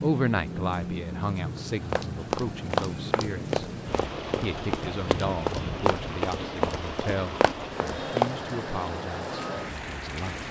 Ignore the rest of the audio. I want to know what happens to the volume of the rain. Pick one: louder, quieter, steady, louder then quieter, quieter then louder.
steady.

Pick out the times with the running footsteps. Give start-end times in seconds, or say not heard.
1.9-8.3.